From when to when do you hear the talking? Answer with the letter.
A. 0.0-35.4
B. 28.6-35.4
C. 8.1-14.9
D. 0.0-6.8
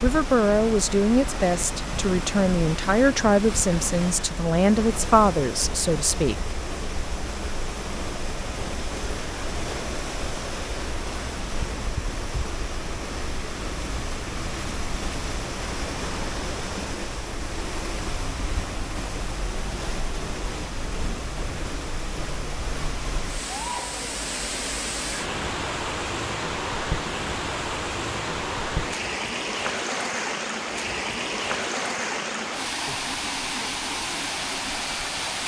D.